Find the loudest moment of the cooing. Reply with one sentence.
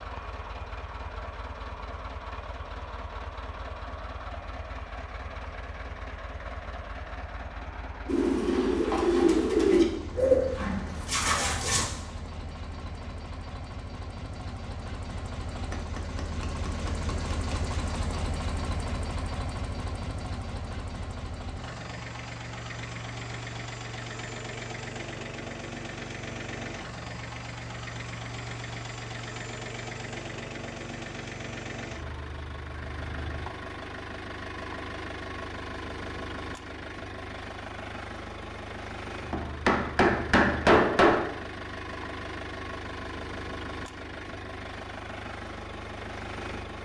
The volume of the cooing peaks at 10 seconds.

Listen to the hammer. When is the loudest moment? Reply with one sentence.
The volume of the hammer peaks at 41 seconds.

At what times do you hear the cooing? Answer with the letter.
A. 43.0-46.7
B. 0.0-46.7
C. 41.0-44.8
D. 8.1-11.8
D.